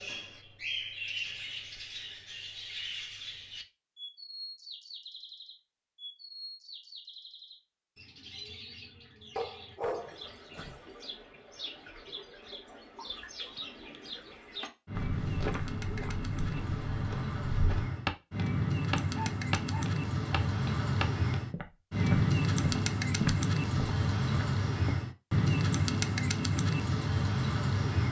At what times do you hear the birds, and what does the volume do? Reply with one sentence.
The birds can be heard from 0.0 to 28.0 s, getting quieter then louder.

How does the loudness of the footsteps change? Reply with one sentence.
The volume of the footsteps goes up.